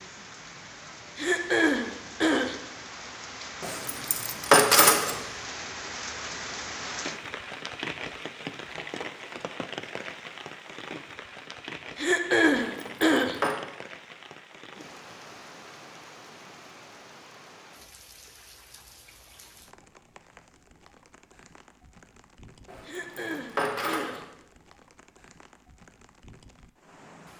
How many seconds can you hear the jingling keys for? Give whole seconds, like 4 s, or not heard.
4 s.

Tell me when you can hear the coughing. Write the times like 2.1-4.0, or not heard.
1.1-2.5, 11.9-13.3, 22.9-24.2.